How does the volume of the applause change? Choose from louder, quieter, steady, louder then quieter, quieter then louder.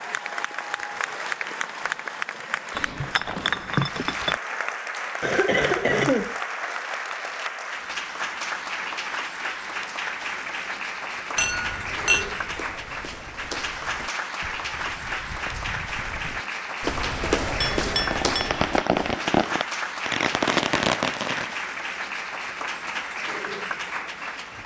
steady.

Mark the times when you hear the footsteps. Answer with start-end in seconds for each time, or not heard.
12.1-19.1.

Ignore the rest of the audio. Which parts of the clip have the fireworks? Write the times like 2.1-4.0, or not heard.
17.9-21.6.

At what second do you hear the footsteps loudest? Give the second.
17 s.